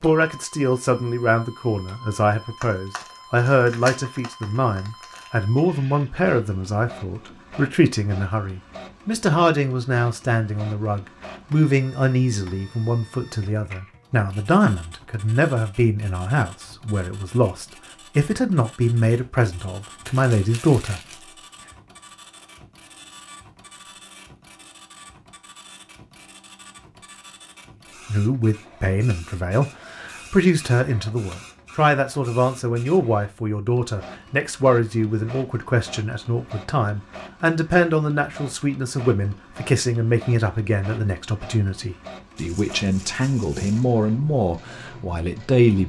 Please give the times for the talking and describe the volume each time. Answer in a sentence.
The talking can be heard from 0.0 to 21.0 s, at a steady volume; and from 28.1 to 45.8 s, at a steady volume.